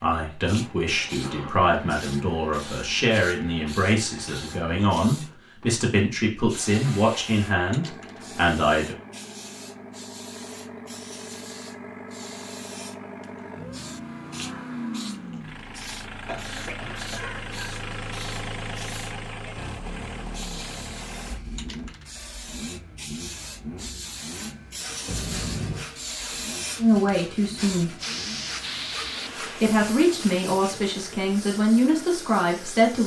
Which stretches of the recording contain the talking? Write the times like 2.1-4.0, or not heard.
0.0-8.9, 26.8-27.9, 29.5-33.0.